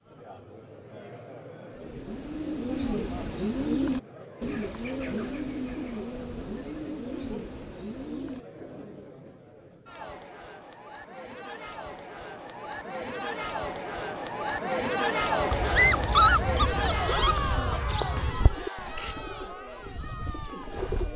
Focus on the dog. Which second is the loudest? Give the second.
16 s.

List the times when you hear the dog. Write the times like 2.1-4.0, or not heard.
15.5-18.4.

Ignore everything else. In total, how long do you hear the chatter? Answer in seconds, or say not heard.
21 s.